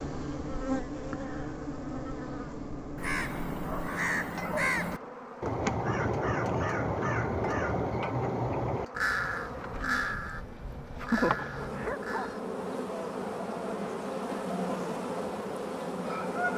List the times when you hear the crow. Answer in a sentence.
You can hear the crow from 3.0 to 12.4 s.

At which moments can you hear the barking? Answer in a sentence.
You can hear the barking from 11.8 to 12.3 s.